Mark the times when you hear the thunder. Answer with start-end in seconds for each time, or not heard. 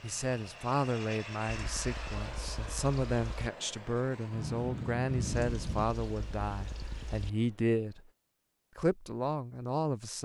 4.3-5.8.